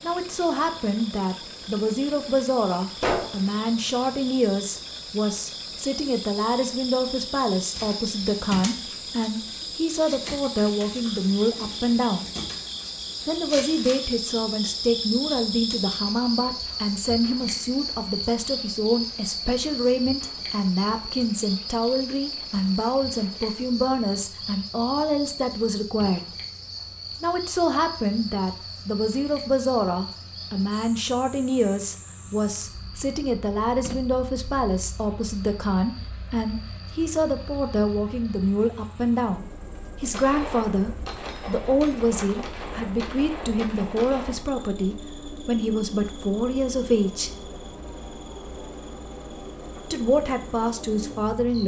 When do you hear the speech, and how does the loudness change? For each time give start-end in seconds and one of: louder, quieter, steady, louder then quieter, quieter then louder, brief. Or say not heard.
0.0-12.3 steady
13.2-26.2 steady
27.2-47.3 steady
49.9-51.6 brief.